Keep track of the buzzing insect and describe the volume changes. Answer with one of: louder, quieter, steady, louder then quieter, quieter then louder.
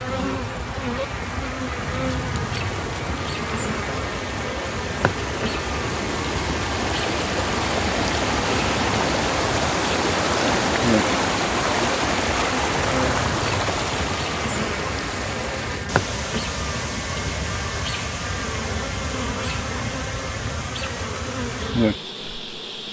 steady.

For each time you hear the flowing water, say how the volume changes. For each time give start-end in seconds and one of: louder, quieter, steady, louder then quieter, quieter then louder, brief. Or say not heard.
0.0-22.8 louder then quieter.